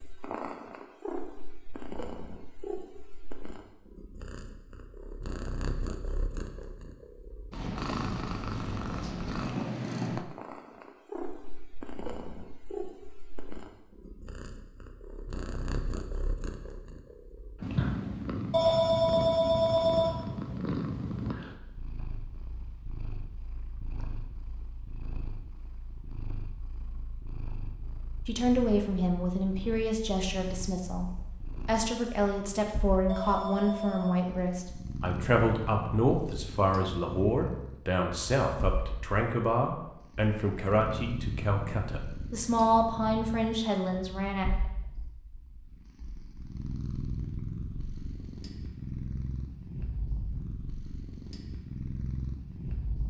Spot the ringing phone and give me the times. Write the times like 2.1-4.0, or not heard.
18.5-20.2, 33.0-34.2.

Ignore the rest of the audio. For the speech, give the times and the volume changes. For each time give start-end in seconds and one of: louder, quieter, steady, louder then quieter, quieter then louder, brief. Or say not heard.
28.2-44.5 steady.